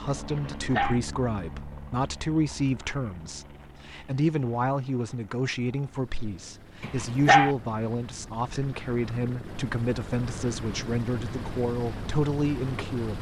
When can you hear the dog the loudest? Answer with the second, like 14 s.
7 s.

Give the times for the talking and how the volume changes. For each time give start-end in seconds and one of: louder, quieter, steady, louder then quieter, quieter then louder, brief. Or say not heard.
0.0-13.1 steady.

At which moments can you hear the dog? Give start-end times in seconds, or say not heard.
0.3-1.0, 6.8-7.5.